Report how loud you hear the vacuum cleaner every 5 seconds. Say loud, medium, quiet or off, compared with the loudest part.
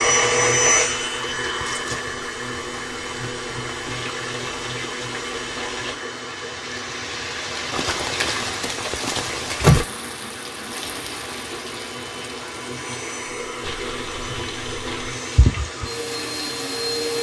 loud, medium, medium, loud.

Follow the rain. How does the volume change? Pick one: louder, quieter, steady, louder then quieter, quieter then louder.
louder then quieter.